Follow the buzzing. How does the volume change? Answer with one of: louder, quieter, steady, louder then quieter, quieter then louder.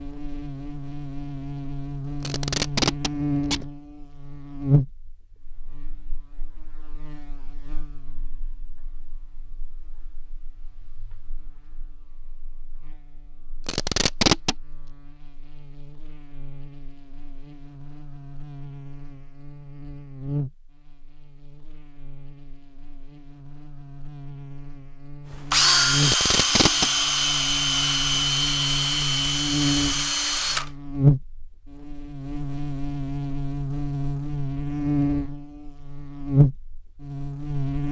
quieter then louder.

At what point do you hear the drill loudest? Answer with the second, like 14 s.
26 s.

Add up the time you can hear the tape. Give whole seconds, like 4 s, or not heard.
3 s.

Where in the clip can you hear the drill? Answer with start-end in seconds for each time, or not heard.
25.3-30.7.